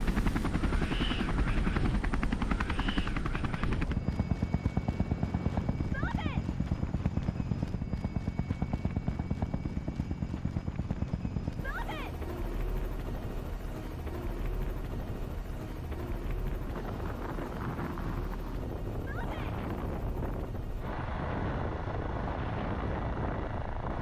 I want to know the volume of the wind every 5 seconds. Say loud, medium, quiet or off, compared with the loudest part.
loud, medium, medium, loud, loud.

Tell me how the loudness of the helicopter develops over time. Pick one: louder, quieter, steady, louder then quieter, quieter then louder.
quieter.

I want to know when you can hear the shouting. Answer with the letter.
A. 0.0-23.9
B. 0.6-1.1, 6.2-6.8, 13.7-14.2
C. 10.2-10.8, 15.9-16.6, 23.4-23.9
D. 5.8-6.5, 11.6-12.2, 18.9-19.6
D.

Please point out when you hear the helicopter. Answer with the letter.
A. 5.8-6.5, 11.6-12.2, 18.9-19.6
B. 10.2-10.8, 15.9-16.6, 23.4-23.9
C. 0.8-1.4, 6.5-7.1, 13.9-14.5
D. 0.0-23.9
D.